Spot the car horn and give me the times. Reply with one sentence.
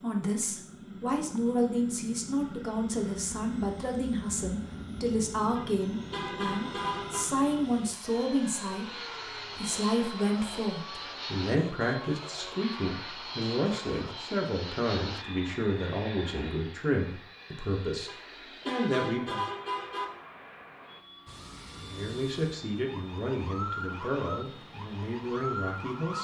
The car horn can be heard from 5.5 to 7.2 s and from 18.1 to 20.1 s.